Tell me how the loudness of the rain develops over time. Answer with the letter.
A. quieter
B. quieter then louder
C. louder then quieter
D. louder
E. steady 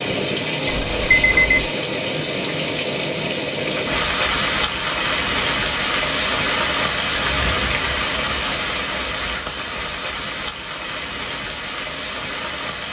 A.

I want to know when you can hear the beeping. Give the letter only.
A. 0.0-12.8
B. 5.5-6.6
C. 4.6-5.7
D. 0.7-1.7
D.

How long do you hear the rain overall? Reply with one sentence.
The rain can be heard for 13 seconds in total.